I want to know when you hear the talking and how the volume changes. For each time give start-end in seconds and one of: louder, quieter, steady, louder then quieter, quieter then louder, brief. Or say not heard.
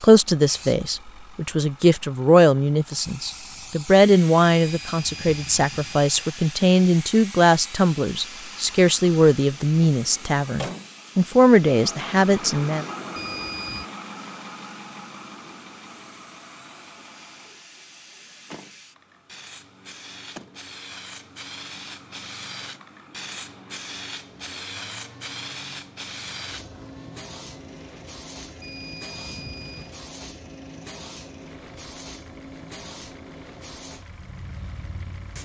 0.0-12.8 steady.